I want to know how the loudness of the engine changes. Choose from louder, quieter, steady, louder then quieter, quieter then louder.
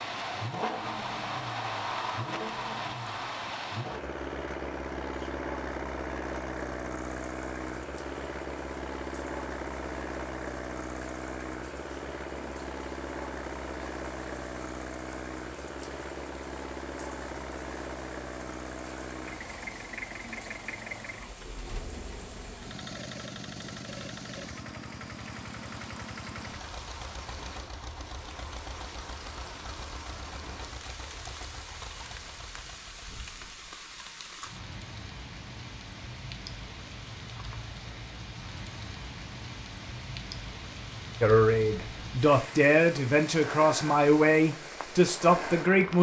quieter.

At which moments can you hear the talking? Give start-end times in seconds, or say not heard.
41.2-45.9.